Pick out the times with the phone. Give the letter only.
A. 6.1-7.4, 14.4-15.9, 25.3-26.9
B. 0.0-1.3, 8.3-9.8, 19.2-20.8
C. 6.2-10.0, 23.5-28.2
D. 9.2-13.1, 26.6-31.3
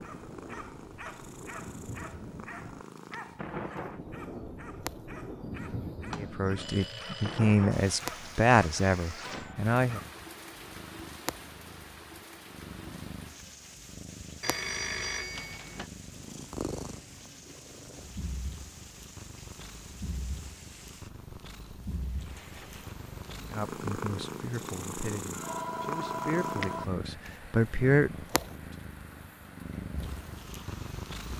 A.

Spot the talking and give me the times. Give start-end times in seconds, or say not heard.
6.2-10.0, 23.5-28.2.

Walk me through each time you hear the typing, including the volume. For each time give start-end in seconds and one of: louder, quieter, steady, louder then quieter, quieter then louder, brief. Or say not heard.
not heard.